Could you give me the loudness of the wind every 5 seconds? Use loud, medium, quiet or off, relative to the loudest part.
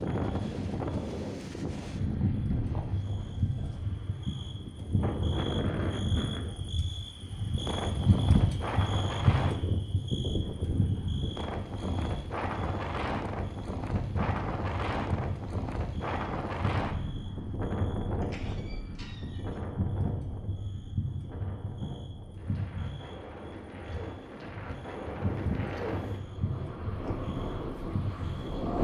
loud, loud, loud, loud, medium, loud.